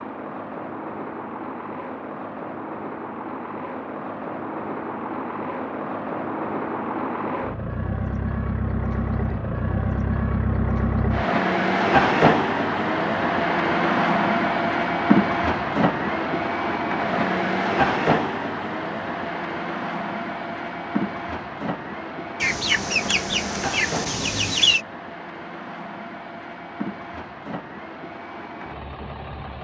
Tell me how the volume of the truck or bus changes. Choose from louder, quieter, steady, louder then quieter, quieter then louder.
louder then quieter.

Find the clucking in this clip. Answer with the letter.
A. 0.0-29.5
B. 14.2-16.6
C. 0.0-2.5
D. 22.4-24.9
D.